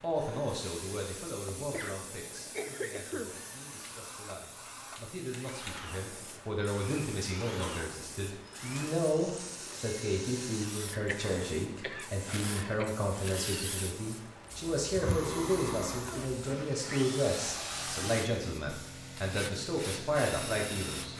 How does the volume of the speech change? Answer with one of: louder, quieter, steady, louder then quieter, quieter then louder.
louder.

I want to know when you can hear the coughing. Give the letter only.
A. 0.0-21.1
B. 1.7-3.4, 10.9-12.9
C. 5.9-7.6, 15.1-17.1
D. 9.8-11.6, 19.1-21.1
B.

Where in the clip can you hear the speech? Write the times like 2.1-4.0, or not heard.
0.0-21.1.